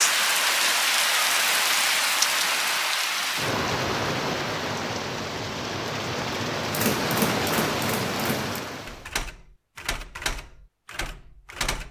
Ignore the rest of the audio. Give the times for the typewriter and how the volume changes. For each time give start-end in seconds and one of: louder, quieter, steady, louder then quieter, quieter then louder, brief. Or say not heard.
6.7-11.8 quieter.